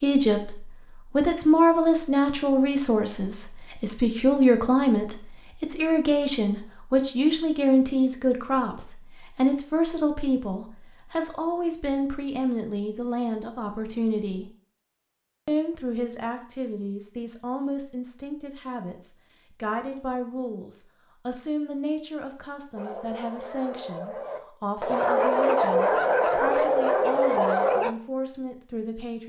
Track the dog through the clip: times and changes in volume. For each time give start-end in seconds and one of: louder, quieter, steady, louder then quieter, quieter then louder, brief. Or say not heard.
22.8-27.9 louder.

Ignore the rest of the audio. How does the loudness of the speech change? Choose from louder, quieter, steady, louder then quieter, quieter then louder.
quieter.